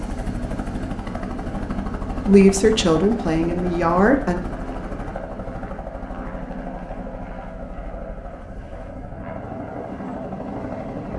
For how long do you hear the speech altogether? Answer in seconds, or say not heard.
2 s.